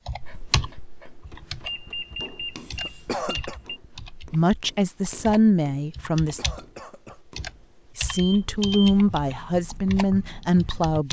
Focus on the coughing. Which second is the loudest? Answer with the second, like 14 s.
3 s.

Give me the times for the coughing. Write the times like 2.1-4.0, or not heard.
2.8-3.6, 6.2-7.2.